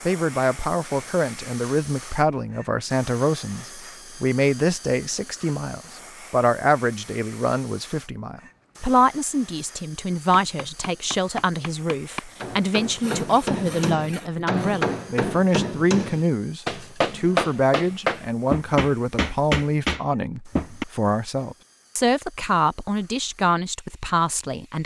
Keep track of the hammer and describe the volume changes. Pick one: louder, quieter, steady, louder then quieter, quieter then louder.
louder.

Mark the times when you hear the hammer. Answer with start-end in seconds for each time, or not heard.
10.1-20.9.